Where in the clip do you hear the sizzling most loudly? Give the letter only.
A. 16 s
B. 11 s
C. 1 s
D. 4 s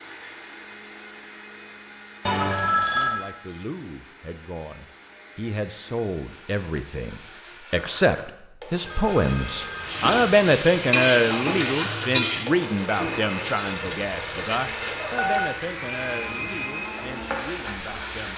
B.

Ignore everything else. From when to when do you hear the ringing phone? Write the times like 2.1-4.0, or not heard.
2.2-3.2, 8.8-10.4, 13.6-15.4.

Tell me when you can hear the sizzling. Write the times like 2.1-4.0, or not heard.
9.7-18.3.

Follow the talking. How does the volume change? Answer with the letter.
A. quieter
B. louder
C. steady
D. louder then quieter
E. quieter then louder
D.